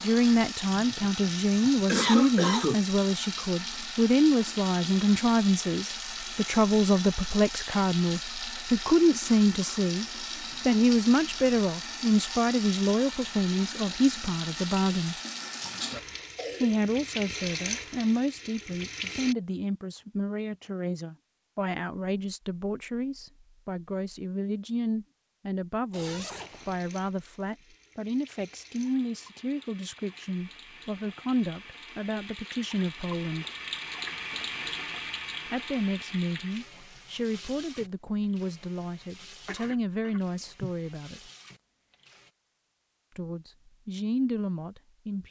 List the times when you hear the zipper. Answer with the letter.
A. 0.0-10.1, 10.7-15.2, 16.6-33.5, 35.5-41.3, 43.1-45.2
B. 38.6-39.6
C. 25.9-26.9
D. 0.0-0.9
C.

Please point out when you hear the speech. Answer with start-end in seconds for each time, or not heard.
0.0-10.1, 10.7-15.2, 16.6-33.5, 35.5-41.3, 43.1-45.2.